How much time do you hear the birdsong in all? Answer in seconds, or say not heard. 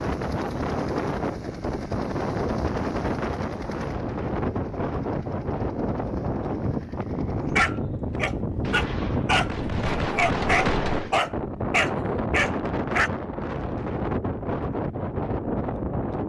not heard.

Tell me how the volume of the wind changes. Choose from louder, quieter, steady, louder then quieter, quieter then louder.
steady.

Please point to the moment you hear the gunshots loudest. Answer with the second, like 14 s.
11 s.